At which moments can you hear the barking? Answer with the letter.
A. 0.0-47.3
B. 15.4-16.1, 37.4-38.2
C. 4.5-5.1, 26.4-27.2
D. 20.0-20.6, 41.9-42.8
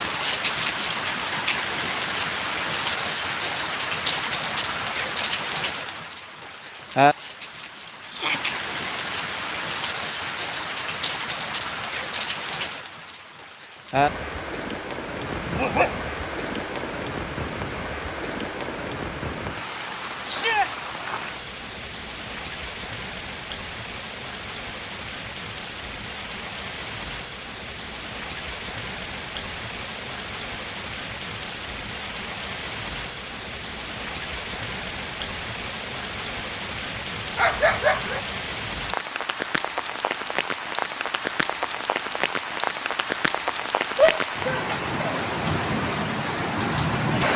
B.